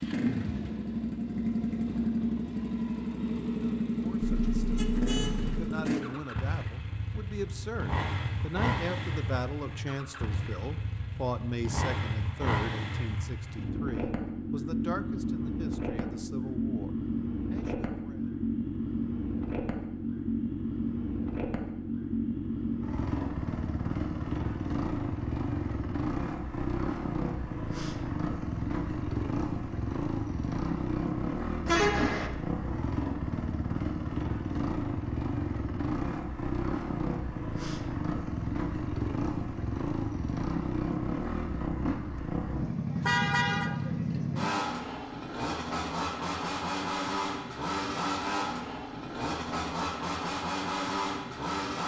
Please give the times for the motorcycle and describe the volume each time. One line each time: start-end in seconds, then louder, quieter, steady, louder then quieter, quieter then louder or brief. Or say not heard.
0.0-51.8 steady.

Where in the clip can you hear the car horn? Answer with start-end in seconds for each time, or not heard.
4.2-5.5, 31.6-32.3, 43.0-43.7.